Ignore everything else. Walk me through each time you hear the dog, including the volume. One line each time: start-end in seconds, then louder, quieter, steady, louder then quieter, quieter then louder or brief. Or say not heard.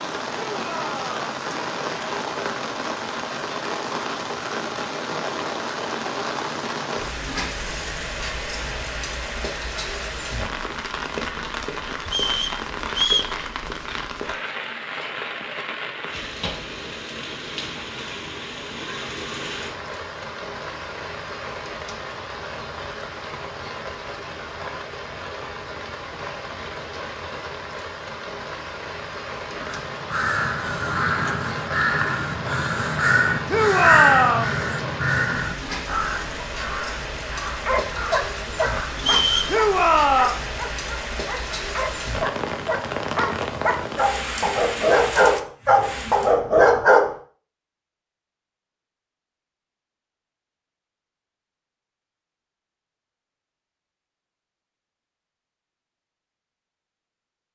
37.6-47.1 quieter then louder.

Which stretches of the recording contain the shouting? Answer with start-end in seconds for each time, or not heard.
0.5-1.2, 33.5-34.5, 39.5-40.4.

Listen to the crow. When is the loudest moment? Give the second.
34 s.